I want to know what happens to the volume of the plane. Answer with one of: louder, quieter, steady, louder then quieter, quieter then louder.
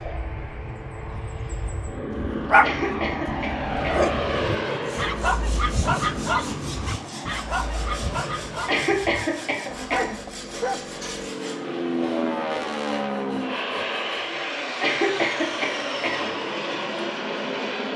quieter then louder.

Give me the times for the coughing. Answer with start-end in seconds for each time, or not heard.
2.6-4.1, 8.7-10.2, 14.8-16.3.